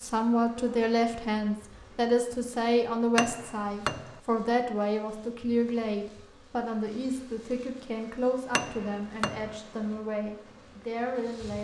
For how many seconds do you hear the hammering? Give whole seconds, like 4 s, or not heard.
2 s.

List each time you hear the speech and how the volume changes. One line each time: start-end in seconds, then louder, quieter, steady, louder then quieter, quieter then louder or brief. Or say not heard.
0.0-11.5 quieter.